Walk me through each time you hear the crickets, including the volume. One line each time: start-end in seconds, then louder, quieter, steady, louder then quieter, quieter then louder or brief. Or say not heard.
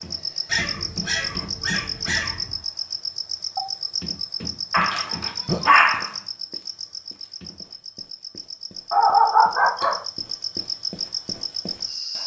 0.0-12.2 quieter then louder.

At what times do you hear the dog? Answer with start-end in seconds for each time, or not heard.
0.5-2.5, 4.7-6.1, 8.9-10.0.